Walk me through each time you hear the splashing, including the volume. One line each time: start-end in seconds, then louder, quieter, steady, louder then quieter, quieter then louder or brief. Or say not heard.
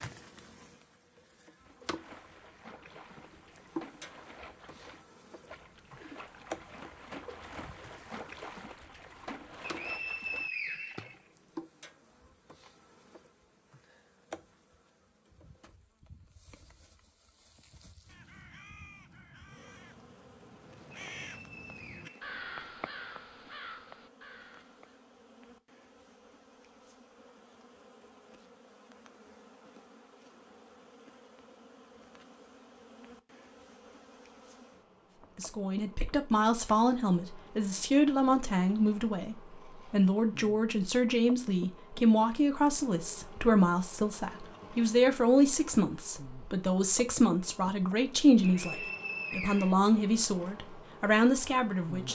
1.6-11.2 louder.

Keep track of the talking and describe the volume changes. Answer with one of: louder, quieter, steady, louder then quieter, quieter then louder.
steady.